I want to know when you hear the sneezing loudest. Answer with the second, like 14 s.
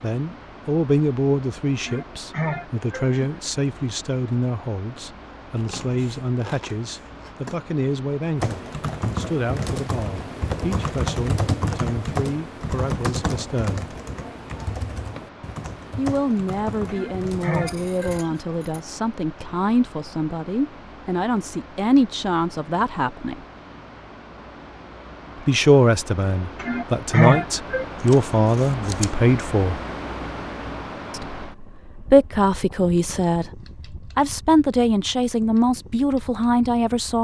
27 s.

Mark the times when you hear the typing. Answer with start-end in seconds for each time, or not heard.
8.3-18.2.